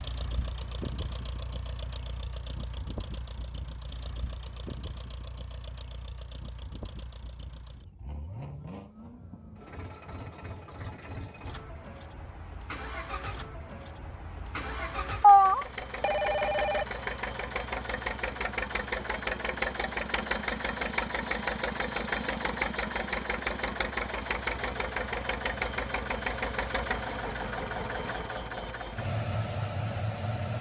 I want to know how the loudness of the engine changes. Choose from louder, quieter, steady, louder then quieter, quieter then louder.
louder.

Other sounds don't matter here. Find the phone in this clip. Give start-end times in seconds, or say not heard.
15.2-16.9.